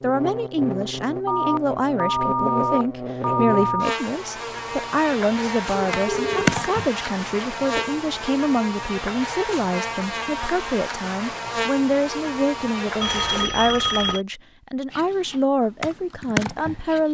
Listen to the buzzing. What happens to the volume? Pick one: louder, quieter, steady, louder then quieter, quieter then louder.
steady.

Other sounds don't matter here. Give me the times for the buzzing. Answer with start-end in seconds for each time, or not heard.
0.0-13.5.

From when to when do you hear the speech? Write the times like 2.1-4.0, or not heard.
0.0-17.0.